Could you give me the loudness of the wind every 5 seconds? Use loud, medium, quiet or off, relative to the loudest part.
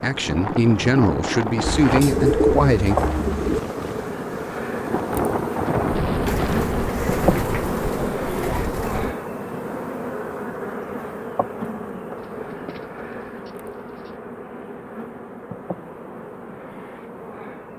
loud, loud, off, off.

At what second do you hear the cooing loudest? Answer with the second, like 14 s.
2 s.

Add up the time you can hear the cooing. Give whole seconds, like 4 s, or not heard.
7 s.